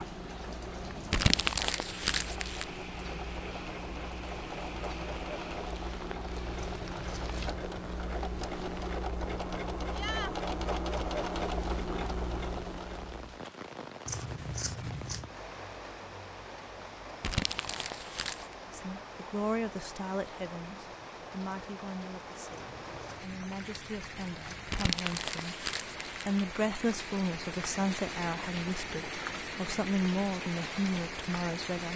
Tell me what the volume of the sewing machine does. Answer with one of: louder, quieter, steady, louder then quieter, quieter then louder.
louder.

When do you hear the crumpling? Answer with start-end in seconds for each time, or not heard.
1.1-2.6, 17.2-18.6, 24.7-26.2.